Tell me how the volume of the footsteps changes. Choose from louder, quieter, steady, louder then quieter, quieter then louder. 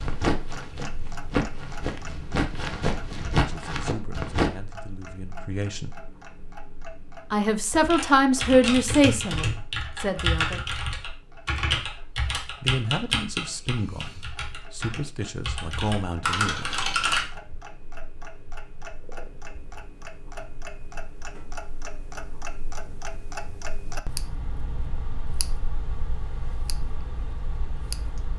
louder.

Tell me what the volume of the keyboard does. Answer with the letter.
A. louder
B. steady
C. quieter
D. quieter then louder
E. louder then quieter
D.